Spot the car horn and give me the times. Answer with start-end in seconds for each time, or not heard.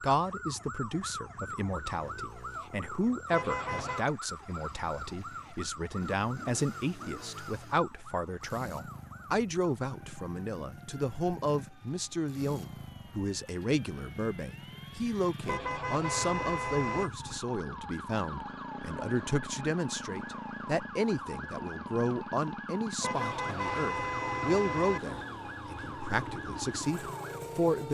3.3-4.0, 15.4-17.1, 23.0-25.0.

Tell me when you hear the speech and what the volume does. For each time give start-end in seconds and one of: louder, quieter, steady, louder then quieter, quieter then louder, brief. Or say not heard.
0.0-27.8 steady.